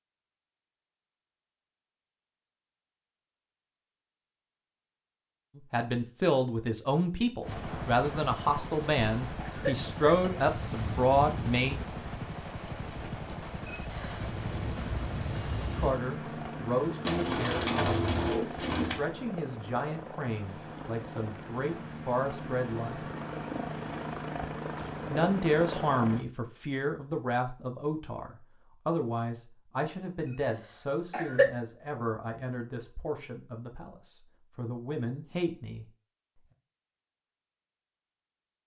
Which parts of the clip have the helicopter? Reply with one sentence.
The helicopter can be heard from 7.4 to 26.2 s.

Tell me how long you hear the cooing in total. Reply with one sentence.
You can hear the cooing for 2 seconds altogether.